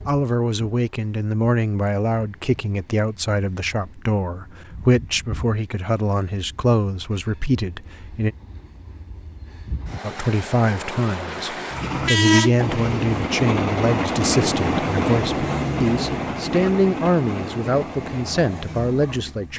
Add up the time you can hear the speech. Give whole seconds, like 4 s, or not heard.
18 s.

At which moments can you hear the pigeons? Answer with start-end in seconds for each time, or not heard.
not heard.